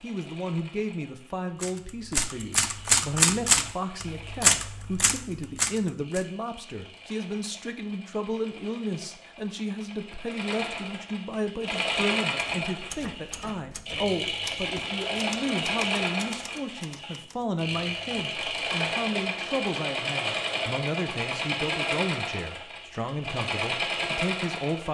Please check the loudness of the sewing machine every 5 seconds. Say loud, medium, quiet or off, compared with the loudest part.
quiet, quiet, loud, loud, loud.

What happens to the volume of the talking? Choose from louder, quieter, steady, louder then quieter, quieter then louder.
steady.